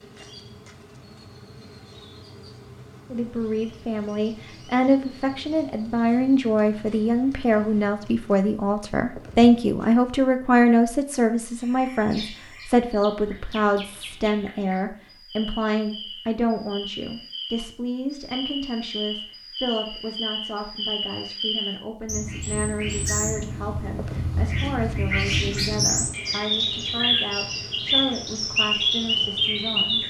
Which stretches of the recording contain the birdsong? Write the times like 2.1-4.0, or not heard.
11.6-30.0.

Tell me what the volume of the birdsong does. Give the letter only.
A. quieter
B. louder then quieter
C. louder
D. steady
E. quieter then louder
C.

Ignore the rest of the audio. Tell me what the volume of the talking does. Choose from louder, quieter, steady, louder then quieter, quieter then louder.
quieter.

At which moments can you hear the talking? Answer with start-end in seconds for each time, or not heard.
3.1-30.0.